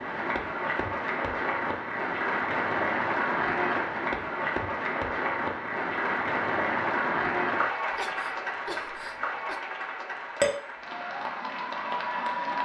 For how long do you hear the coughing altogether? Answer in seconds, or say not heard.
2 s.